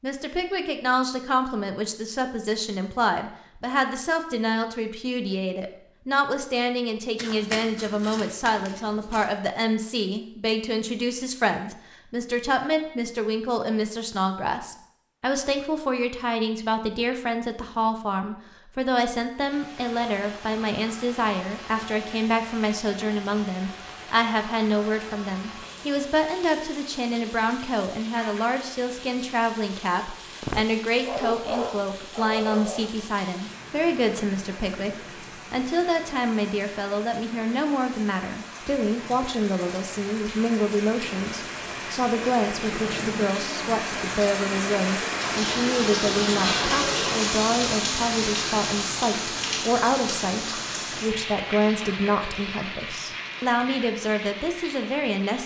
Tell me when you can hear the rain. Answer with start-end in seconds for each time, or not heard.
19.3-55.4.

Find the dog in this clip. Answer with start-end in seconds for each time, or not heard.
30.4-33.0.